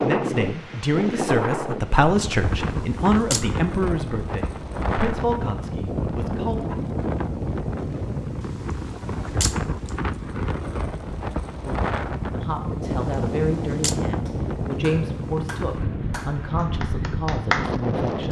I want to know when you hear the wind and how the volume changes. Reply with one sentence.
You can hear the wind from 0.0 to 18.2 s, at a steady volume.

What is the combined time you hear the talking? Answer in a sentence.
You can hear the talking for 13 seconds altogether.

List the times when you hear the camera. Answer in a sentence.
You can hear the camera from 2.5 to 3.5 s, from 8.4 to 9.9 s and from 12.8 to 13.9 s.